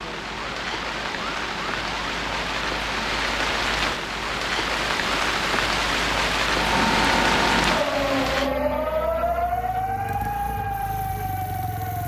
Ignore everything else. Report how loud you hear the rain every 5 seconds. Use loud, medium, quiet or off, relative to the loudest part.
loud, loud, off.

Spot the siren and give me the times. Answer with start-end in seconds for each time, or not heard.
0.0-12.0.